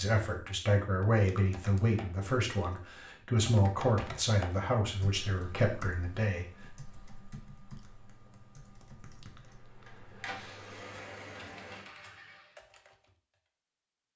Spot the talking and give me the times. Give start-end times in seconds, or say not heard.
0.0-6.5.